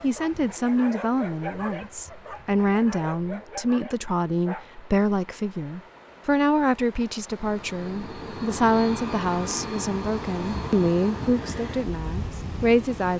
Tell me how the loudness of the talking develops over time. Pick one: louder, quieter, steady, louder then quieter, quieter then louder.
steady.